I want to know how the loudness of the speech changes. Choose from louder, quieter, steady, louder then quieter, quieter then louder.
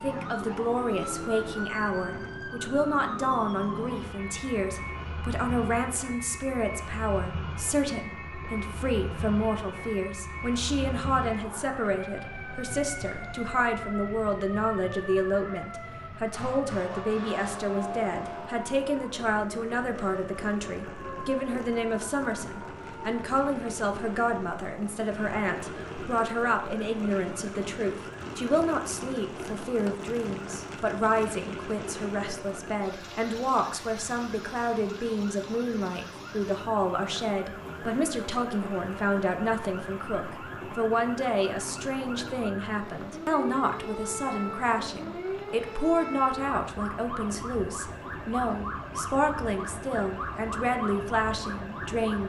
steady.